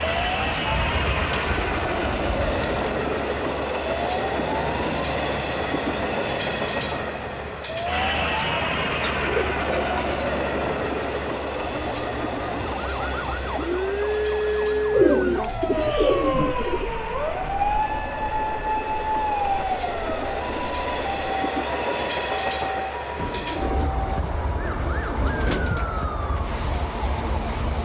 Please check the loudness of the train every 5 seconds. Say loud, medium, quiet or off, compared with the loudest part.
loud, loud, loud, medium, loud, medium.